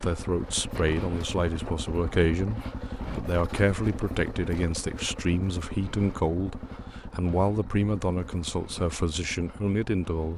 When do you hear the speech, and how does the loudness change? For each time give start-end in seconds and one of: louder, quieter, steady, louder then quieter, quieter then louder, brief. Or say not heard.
0.0-10.3 steady.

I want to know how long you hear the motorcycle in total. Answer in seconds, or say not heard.
10 s.